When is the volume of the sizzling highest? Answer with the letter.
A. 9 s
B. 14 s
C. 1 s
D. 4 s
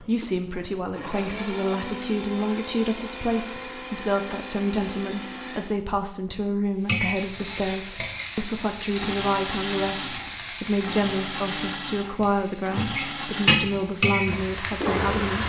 B.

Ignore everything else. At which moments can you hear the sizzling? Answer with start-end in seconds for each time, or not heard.
6.8-15.4.